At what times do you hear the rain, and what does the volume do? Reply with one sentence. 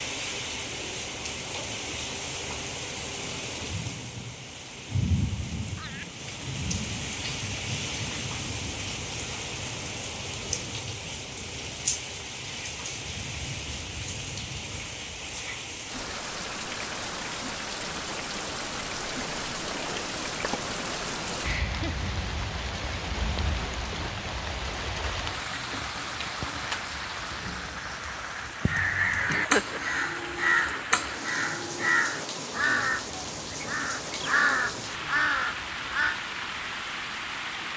You can hear the rain from 0.0 to 37.7 s, at a steady volume.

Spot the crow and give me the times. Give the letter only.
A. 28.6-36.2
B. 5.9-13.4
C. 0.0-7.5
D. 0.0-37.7
A.